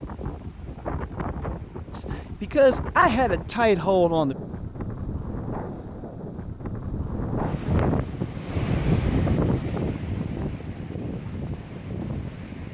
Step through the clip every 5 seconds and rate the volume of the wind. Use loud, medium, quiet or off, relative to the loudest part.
medium, loud, medium.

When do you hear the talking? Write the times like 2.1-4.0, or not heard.
1.9-4.3.